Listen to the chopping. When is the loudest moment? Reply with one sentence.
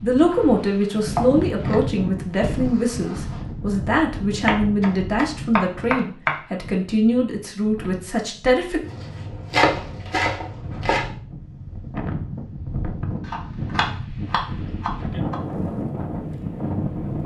The loudest moment of the chopping is at 10 seconds.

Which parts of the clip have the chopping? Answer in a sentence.
You can hear the chopping from 0.3 to 1.9 s, from 4.5 to 6.3 s, from 8.8 to 11.1 s and from 13.2 to 15.3 s.